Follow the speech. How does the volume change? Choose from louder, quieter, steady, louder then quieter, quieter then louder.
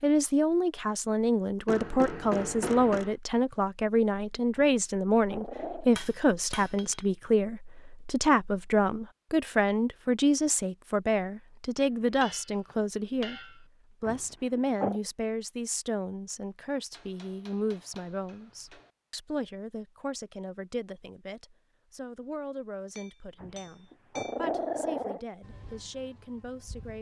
quieter.